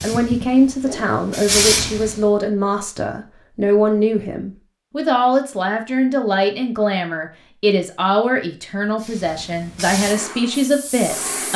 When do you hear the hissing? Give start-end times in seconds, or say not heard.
0.0-2.2, 9.0-11.5.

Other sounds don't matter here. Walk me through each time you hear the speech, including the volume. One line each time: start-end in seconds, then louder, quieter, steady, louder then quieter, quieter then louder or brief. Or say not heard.
0.0-11.5 steady.